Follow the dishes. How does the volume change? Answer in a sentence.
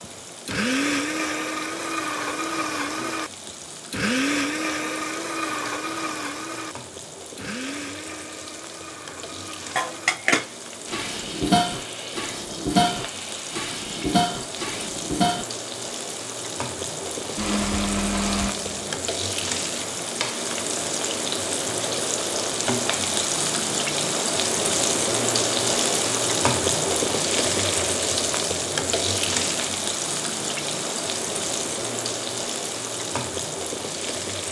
The loudness of the dishes goes down, then up.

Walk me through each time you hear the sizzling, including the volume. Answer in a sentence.
The sizzling can be heard from 0.0 to 34.4 s, getting louder.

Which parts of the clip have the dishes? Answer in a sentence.
The dishes can be heard from 9.8 to 15.4 s.